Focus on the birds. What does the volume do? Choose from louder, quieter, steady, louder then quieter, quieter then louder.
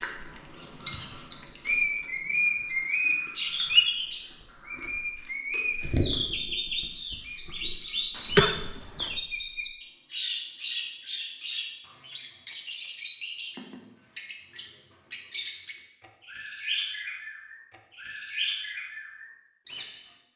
quieter.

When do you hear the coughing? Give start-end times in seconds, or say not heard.
8.2-9.1.